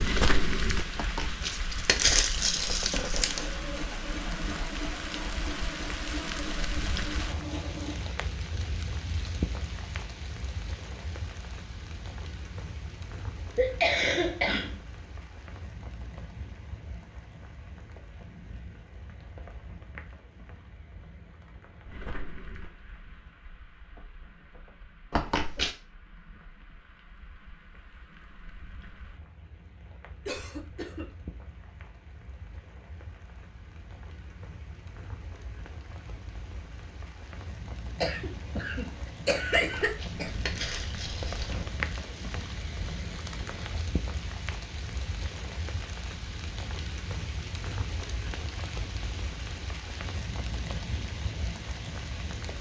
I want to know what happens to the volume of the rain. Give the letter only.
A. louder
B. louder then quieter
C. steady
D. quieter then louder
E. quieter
D.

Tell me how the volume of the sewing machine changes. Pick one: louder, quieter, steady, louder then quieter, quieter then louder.
steady.